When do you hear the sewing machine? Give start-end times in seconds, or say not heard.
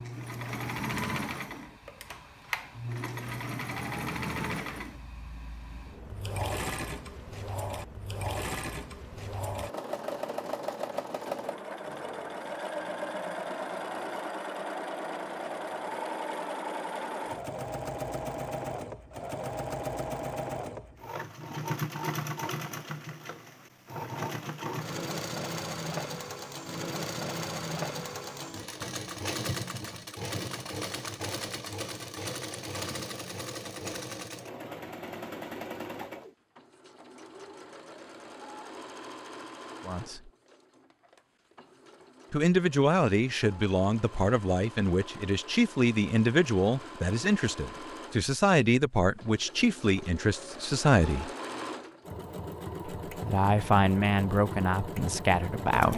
0.0-55.9.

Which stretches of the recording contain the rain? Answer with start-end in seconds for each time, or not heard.
not heard.